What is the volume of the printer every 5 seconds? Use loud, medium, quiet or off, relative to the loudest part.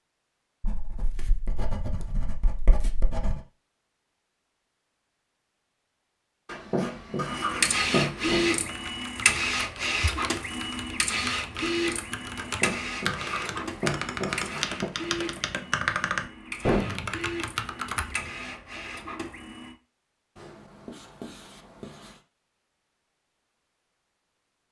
off, loud, medium, medium, off.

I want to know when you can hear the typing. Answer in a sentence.
You can hear the typing from 8.2 to 18.2 s.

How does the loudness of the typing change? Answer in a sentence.
The volume of the typing goes up.